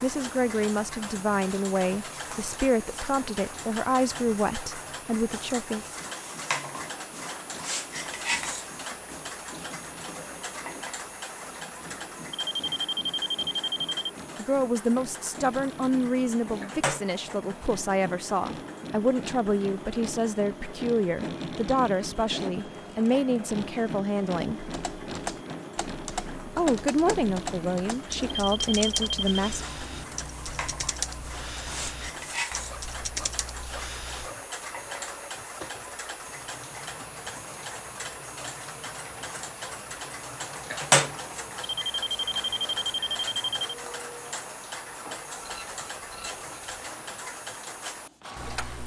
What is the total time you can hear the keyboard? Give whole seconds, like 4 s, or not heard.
10 s.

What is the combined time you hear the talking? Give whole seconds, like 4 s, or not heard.
19 s.